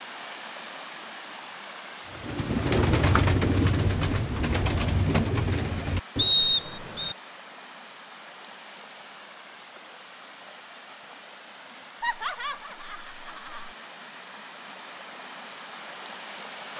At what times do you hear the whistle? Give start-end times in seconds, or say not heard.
6.2-7.2.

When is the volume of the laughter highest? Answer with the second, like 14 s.
12 s.